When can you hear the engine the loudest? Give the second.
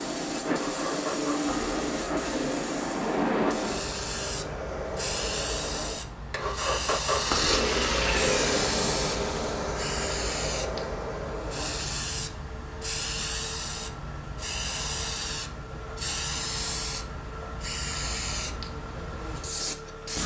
8 s.